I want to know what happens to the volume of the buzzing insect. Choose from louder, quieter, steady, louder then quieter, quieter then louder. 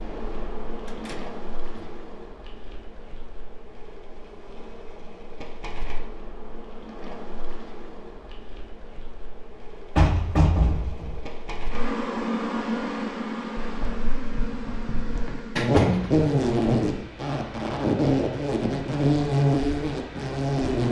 louder.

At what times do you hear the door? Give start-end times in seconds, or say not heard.
0.8-1.9, 9.9-11.2, 15.6-16.2.